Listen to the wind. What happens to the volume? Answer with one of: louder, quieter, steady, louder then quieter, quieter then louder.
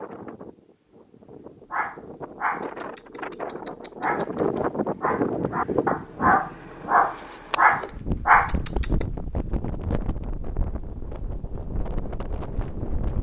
louder then quieter.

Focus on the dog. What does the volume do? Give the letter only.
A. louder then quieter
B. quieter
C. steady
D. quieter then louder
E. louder
E.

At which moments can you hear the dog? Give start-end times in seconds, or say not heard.
1.7-9.1.